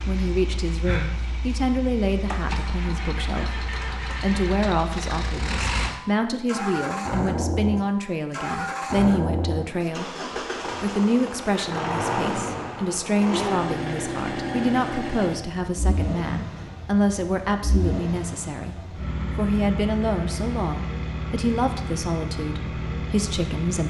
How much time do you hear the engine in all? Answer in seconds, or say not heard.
24 s.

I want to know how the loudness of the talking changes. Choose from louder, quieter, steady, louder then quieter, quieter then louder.
steady.